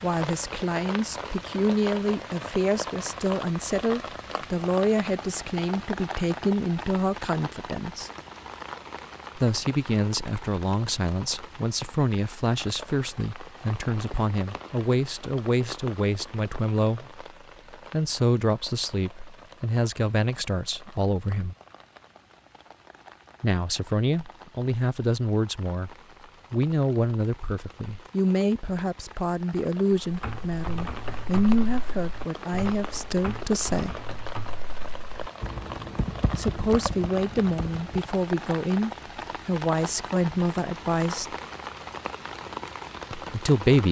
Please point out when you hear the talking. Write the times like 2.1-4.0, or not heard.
0.0-8.1, 9.3-21.6, 23.4-34.0, 36.4-41.4, 43.1-43.8.